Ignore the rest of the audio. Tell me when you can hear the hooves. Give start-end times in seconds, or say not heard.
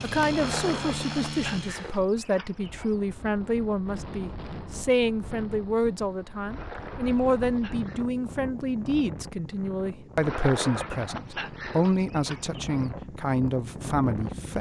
not heard.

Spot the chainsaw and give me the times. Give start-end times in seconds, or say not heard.
0.0-2.0.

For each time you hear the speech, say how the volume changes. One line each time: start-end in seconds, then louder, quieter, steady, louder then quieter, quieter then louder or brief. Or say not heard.
0.0-14.5 steady.